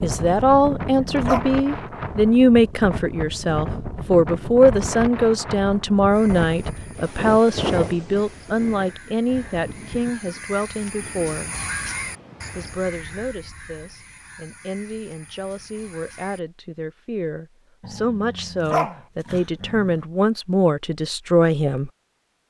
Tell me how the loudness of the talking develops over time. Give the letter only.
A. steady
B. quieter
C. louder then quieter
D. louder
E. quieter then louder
E.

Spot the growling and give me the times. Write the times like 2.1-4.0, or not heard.
0.4-1.4, 17.8-20.1.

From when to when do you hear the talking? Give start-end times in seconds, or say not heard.
0.0-11.6, 12.6-21.9.